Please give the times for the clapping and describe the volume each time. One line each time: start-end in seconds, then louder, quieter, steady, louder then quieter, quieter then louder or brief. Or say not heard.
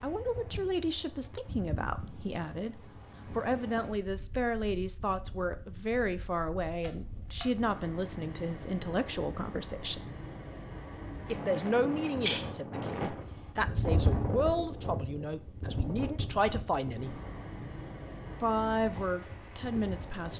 not heard.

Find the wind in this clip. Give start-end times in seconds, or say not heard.
0.0-20.3.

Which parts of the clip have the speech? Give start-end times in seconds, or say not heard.
0.0-10.0, 11.3-17.1, 18.4-20.3.